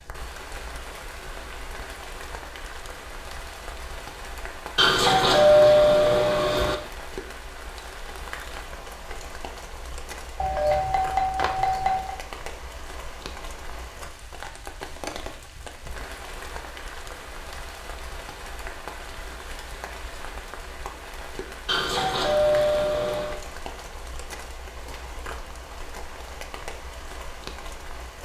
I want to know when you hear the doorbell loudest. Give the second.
6 s.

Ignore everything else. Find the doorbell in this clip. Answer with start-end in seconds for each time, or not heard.
4.8-6.8, 10.4-12.2, 21.6-23.4.